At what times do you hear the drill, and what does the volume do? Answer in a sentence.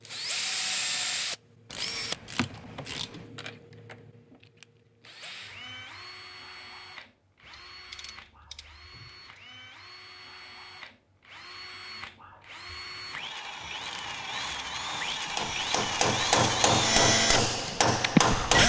The drill can be heard from 0.1 to 18.6 s, getting quieter then louder.